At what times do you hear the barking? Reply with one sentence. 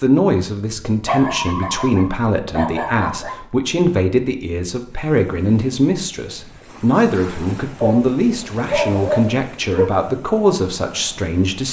The barking can be heard from 0.8 to 3.5 s and from 7.8 to 9.9 s.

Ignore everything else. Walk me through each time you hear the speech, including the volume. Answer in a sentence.
You can hear the speech from 0.0 to 11.6 s, at a steady volume.